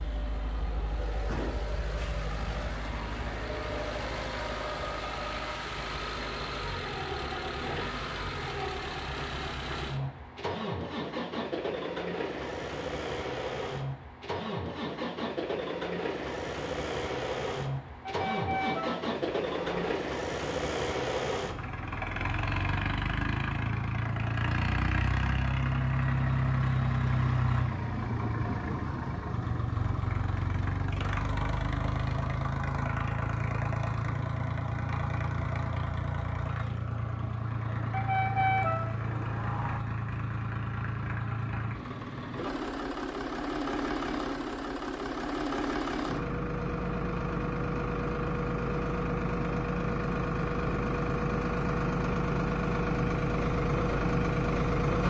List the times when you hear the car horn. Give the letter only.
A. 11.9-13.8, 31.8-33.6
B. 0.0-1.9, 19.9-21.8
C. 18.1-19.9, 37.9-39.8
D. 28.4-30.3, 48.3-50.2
C.